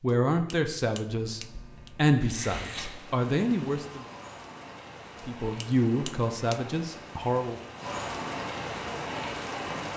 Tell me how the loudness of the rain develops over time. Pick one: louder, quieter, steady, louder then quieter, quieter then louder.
louder.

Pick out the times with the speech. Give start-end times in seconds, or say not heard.
0.0-4.0, 5.2-7.6.